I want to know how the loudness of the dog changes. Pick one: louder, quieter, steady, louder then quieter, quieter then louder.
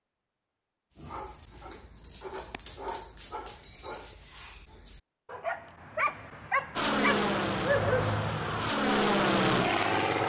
louder.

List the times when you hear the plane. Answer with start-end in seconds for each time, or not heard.
6.8-10.2.